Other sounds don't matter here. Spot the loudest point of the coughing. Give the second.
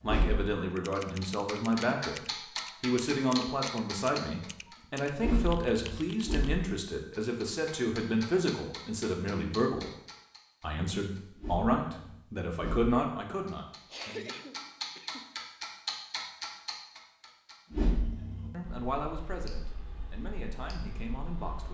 14 s.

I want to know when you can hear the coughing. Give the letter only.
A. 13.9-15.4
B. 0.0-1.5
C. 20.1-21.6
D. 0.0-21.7
A.